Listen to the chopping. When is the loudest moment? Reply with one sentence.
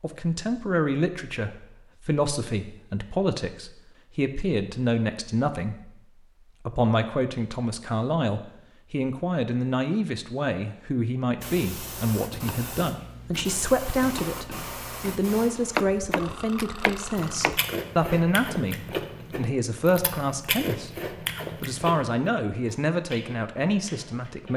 The volume of the chopping peaks at 16 seconds.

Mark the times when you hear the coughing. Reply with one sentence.
The coughing can't be heard in this clip.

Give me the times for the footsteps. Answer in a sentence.
You can't hear the footsteps here.